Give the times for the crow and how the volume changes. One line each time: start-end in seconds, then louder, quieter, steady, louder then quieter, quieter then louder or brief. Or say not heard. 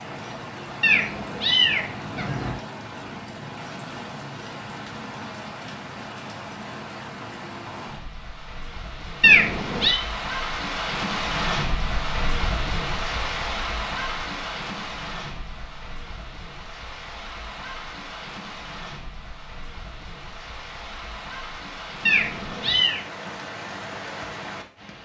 not heard.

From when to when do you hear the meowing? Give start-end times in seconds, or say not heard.
0.8-2.5, 9.2-10.0, 22.1-23.0.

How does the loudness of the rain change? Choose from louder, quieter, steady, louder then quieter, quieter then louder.
louder then quieter.